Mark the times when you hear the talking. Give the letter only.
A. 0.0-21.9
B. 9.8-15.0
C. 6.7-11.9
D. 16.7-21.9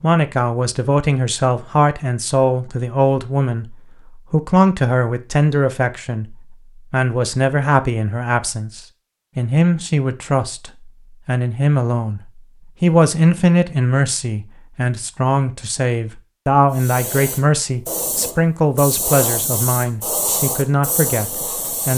A.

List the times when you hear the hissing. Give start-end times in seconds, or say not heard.
16.7-21.9.